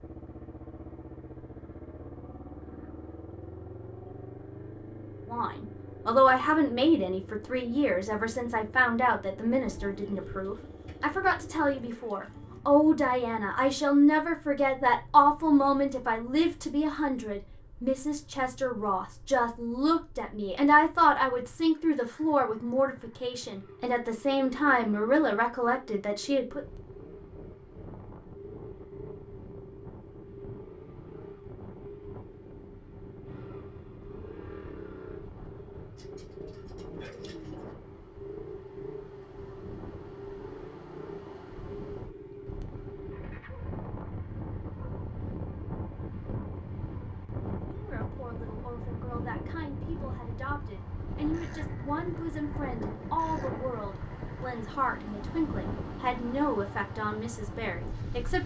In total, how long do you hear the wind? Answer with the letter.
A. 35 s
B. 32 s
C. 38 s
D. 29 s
B.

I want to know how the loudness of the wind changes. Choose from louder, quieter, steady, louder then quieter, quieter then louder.
louder.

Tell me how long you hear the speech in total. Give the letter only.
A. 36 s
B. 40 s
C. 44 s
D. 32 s
D.